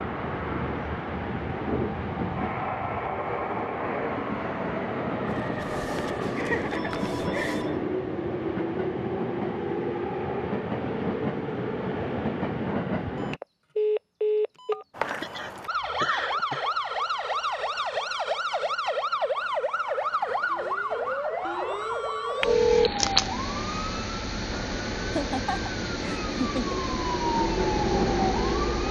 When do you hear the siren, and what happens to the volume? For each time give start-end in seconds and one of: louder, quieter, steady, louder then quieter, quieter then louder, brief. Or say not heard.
14.9-28.8 steady.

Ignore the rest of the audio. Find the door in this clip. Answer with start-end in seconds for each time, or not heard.
not heard.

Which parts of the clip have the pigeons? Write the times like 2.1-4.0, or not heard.
not heard.